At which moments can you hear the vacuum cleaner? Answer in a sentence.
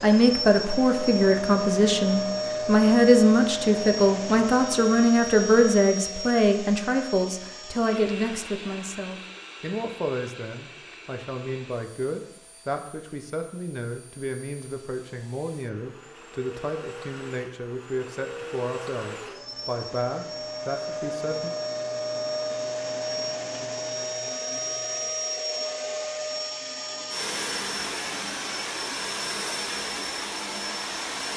You can hear the vacuum cleaner from 0.0 to 31.3 s.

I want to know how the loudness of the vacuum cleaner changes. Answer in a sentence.
The loudness of the vacuum cleaner goes down, then up.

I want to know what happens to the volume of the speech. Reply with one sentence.
The volume of the speech goes down.